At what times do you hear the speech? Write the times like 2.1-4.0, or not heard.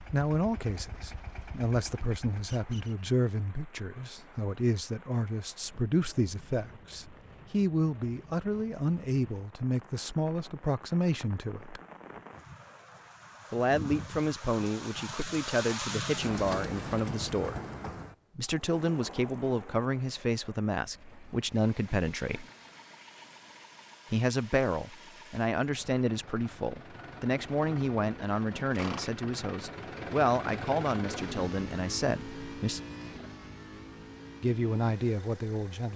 0.1-11.8, 13.5-17.6, 18.4-22.4, 24.1-32.8, 34.4-35.9.